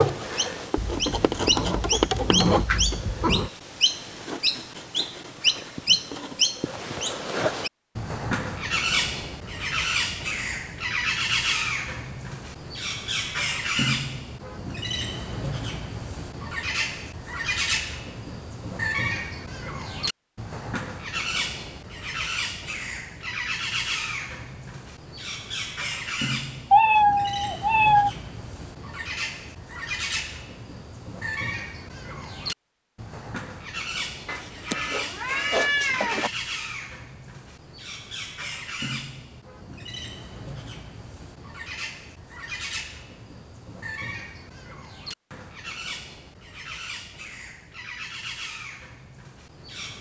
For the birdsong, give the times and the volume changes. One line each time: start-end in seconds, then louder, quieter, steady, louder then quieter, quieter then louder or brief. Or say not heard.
0.0-49.9 quieter.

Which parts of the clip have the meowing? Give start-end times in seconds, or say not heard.
0.8-3.5, 26.7-28.1, 34.2-36.3.